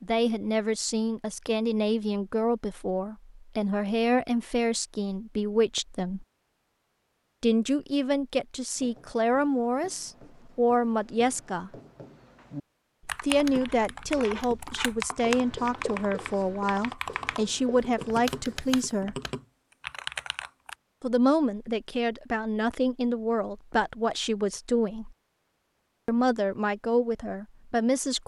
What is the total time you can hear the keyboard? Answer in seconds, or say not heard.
8 s.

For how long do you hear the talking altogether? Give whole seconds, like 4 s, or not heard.
23 s.